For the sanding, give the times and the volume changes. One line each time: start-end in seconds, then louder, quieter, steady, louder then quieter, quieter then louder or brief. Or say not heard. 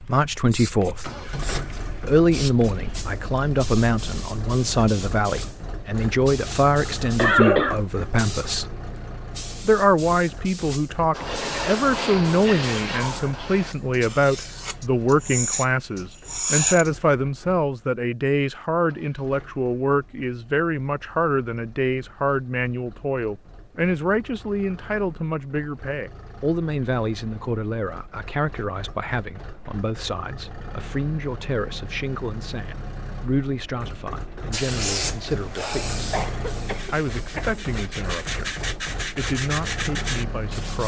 11.1-16.9 quieter then louder
36.6-40.8 louder.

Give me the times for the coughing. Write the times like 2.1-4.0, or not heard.
7.2-7.8, 36.1-37.6.